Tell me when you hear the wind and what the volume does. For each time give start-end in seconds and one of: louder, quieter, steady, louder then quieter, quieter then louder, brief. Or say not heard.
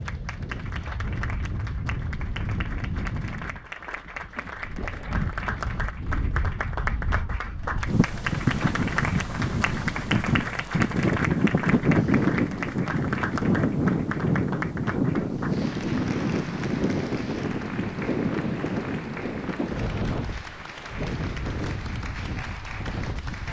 0.0-23.4 louder then quieter.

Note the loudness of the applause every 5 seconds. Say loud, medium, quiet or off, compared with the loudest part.
medium, loud, loud, medium, medium.